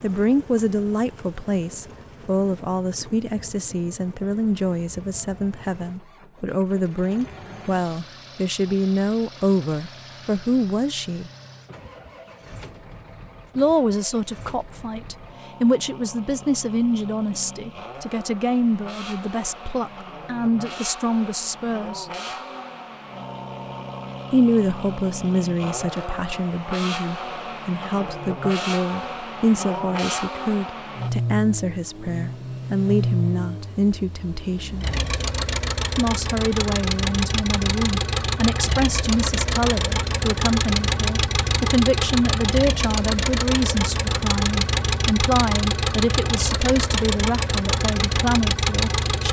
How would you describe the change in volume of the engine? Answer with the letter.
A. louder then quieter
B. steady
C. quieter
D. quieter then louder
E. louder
E.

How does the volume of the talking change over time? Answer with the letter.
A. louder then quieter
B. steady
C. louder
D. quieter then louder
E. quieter
B.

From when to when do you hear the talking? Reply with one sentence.
You can hear the talking from 0.0 to 11.3 s, from 13.6 to 22.1 s, from 24.3 to 34.9 s and from 36.0 to 49.2 s.